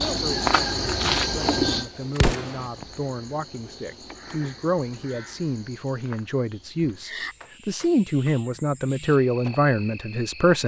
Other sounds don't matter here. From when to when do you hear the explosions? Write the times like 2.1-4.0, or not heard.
2.1-2.6.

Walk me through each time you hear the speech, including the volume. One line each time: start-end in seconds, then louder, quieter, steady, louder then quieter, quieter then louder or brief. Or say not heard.
0.0-10.6 louder.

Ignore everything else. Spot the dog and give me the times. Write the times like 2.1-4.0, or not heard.
not heard.